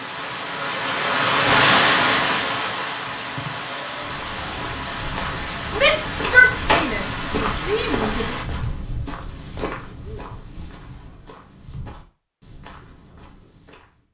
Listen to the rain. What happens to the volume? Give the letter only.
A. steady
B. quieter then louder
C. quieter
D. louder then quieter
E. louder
C.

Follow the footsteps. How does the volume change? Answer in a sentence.
The volume of the footsteps goes up, then down.